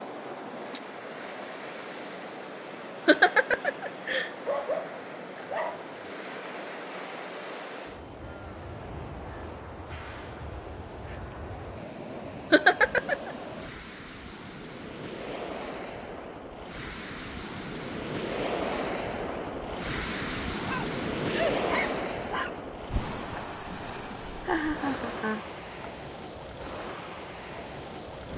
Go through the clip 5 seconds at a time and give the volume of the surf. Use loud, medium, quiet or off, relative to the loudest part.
medium, medium, medium, loud, loud, medium.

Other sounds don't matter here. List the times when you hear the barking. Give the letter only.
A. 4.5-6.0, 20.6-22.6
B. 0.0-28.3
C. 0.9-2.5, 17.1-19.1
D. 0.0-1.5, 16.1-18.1
A.